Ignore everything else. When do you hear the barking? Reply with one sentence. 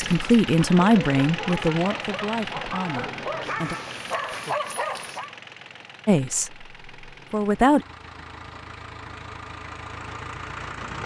You can hear the barking from 0.1 to 5.3 s.